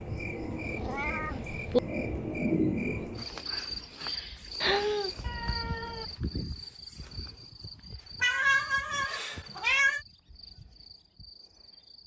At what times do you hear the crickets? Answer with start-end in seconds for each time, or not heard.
0.0-12.0.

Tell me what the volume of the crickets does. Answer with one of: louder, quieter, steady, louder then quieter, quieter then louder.
quieter.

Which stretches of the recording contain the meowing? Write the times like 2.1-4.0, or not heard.
0.7-1.8, 4.6-6.1, 8.2-10.0.